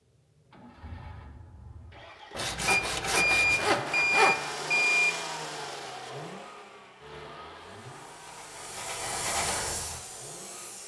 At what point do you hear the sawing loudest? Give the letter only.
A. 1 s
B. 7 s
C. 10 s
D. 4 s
D.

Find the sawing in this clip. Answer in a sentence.
You can hear the sawing from 2.4 to 4.5 s.